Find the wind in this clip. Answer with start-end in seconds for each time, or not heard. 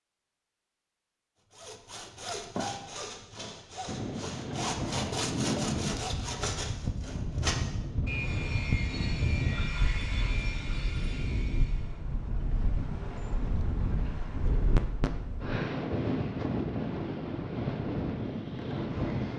3.9-19.3.